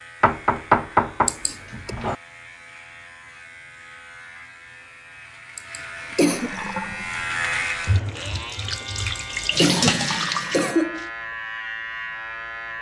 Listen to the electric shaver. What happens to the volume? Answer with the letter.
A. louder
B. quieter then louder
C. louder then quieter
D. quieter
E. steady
A.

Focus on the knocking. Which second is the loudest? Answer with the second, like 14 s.
1 s.